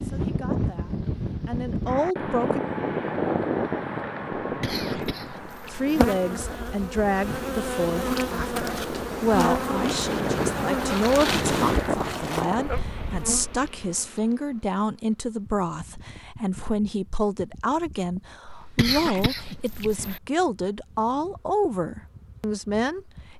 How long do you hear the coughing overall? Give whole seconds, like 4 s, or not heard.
3 s.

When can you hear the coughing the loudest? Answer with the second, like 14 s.
19 s.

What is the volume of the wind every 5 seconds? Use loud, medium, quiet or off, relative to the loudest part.
loud, medium, loud, off, off.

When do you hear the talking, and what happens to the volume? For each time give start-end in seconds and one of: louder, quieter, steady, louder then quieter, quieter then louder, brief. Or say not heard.
0.0-2.6 brief
5.7-23.3 steady.